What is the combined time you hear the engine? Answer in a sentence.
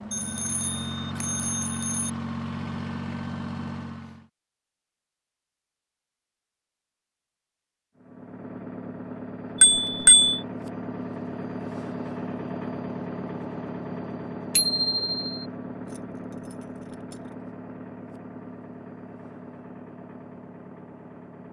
The engine can be heard for 18 seconds in total.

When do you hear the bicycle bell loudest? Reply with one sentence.
The volume of the bicycle bell peaks at 10 seconds.